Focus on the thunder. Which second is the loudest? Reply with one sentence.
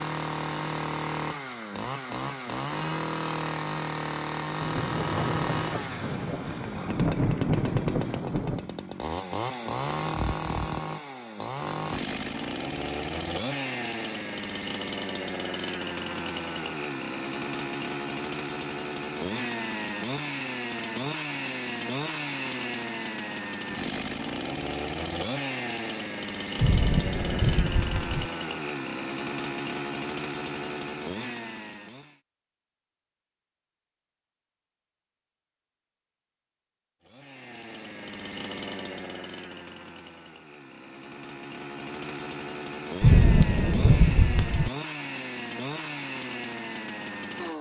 The loudest moment of the thunder is at 43 seconds.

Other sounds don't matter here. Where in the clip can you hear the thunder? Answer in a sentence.
The thunder can be heard from 4.6 to 8.7 s, from 26.6 to 28.3 s and from 43.0 to 44.7 s.